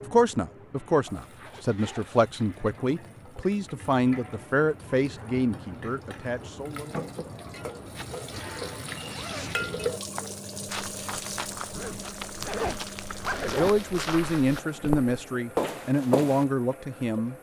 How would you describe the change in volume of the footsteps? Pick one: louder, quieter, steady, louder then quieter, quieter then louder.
louder.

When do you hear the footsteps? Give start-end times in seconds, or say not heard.
10.2-16.4.